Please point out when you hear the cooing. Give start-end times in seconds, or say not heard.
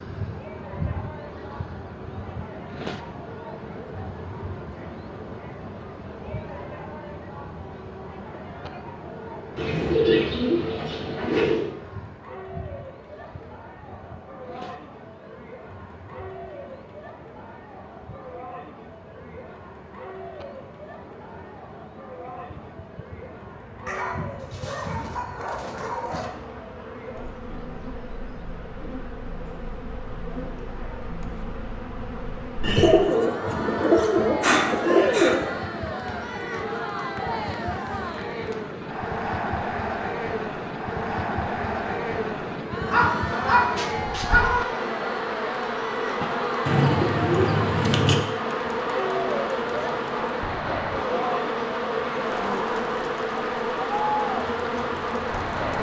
9.6-11.7, 32.6-35.5, 46.2-48.2.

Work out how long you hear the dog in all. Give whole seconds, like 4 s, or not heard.
4 s.